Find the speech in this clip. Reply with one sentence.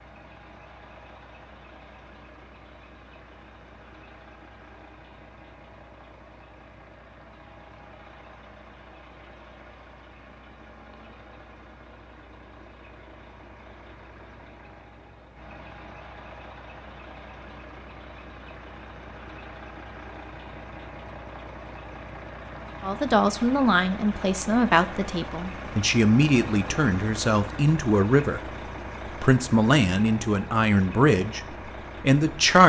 You can hear the speech from 22.8 to 28.4 s and from 29.1 to 32.6 s.